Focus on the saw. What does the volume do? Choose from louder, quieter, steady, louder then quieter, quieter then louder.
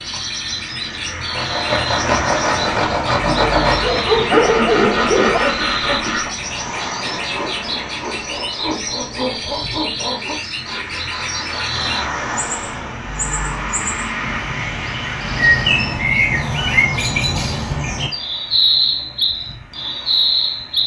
quieter.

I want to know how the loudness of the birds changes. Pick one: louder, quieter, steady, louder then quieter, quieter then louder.
louder.